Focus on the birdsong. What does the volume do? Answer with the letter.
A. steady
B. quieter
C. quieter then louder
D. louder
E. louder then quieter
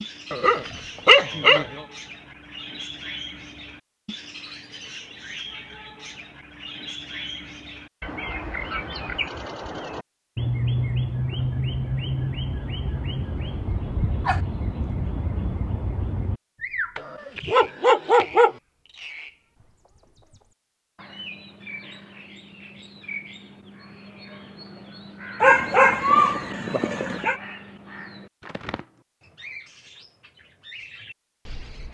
E.